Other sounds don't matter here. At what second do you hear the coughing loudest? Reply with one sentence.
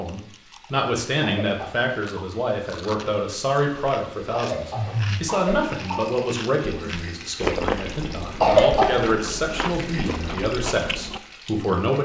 The volume of the coughing peaks at 9 seconds.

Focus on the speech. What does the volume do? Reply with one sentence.
The loudness of the speech stays about the same.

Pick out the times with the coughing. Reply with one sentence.
You can hear the coughing from 1.2 to 2.2 s, from 4.3 to 6.2 s and from 8.4 to 9.0 s.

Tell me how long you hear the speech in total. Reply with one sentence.
The speech can be heard for 12 seconds in total.